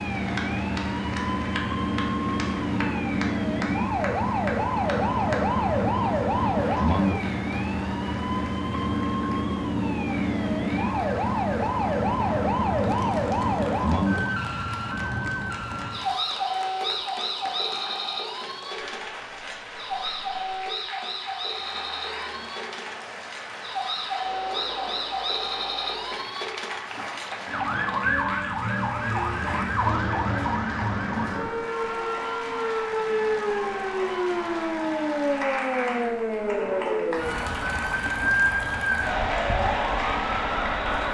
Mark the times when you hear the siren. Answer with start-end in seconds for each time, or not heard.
0.0-41.1.